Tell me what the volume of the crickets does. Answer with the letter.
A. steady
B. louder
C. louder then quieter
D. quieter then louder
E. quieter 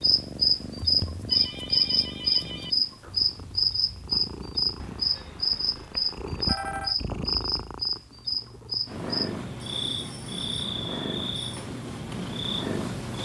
E.